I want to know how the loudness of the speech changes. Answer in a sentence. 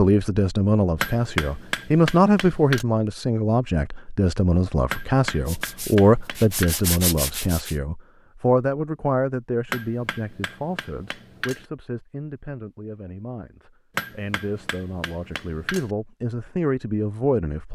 The volume of the speech goes down, then up.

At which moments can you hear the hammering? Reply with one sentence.
You can hear the hammering from 1.0 to 2.9 s, from 4.9 to 6.8 s, from 9.7 to 11.7 s and from 13.9 to 15.9 s.